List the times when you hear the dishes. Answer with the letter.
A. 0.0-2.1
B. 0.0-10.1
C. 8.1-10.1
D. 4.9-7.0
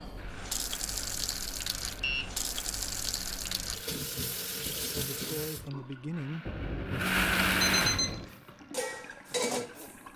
C.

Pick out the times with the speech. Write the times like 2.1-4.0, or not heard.
4.9-7.0.